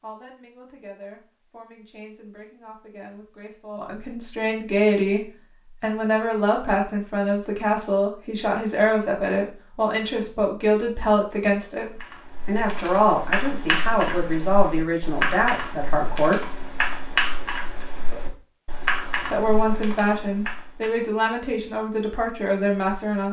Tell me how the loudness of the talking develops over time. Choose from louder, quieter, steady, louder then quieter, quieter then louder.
louder.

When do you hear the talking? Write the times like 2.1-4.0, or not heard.
0.0-16.6, 19.2-23.2.